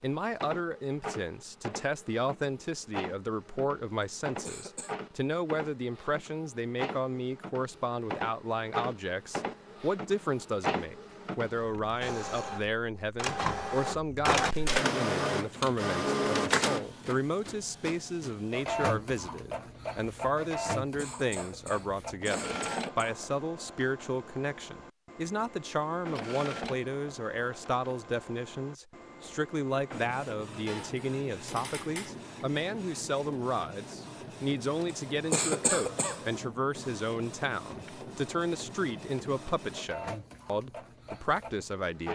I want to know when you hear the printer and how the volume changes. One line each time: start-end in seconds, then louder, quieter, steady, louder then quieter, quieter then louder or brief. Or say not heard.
0.0-42.1 louder then quieter.